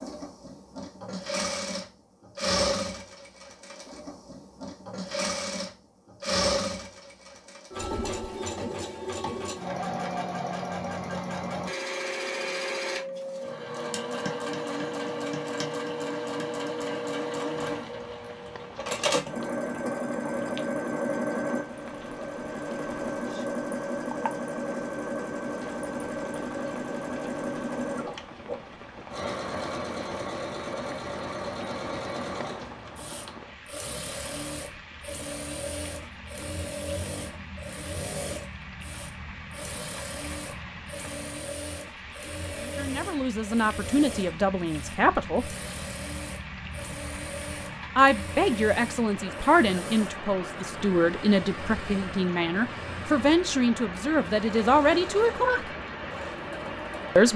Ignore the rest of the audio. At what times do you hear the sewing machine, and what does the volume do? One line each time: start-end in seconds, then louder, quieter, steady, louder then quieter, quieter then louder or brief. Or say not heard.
0.0-57.1 quieter.